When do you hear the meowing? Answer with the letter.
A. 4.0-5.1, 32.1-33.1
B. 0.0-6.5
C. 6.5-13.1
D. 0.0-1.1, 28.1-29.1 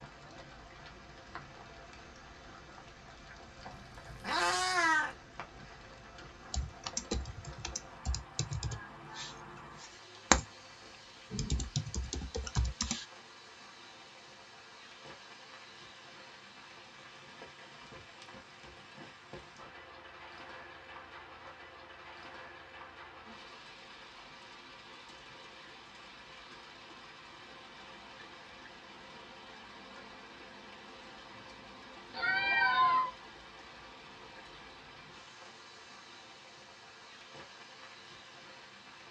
A.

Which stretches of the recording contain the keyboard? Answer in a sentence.
You can hear the keyboard from 6.5 to 13.1 s.